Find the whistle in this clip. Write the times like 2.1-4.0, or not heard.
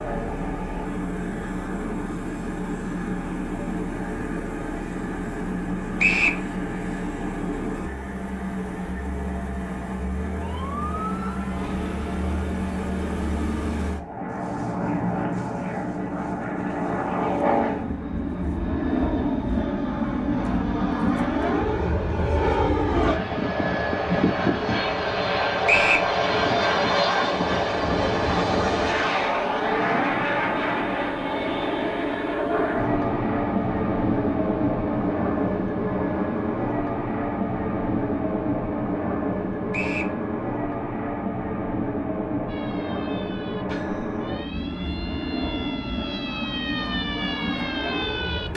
6.0-6.4, 25.6-26.1, 39.7-40.1.